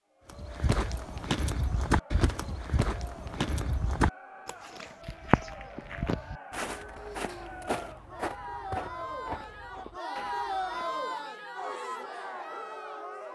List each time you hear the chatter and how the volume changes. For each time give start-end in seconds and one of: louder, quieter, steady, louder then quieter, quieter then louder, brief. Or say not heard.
0.1-13.3 louder.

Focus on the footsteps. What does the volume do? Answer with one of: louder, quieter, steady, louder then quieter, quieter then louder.
quieter.